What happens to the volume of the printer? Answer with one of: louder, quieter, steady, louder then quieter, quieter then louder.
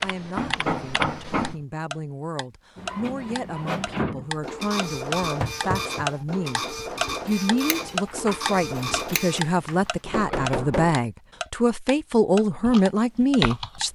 steady.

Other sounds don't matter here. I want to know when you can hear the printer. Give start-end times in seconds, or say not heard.
2.8-9.4.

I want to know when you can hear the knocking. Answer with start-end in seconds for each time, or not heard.
0.3-1.6, 5.4-6.0, 10.1-11.0.